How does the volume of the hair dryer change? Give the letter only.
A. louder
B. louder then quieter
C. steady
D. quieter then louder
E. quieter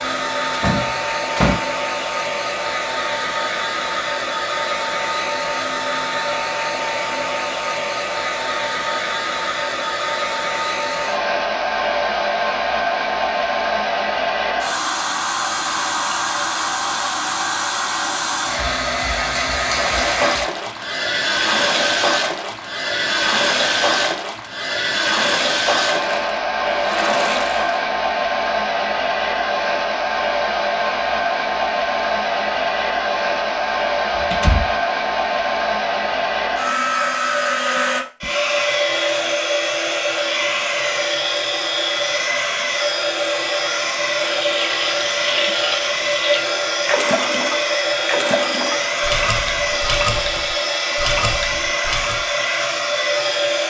C.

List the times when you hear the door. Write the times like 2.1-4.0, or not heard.
0.5-1.6, 34.1-34.8.